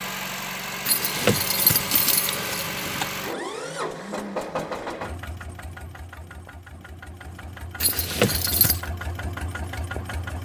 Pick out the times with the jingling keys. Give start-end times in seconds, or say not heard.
0.8-3.1, 7.8-8.8.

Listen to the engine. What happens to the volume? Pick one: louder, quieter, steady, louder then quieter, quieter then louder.
quieter then louder.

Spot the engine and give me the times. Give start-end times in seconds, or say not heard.
0.0-10.4.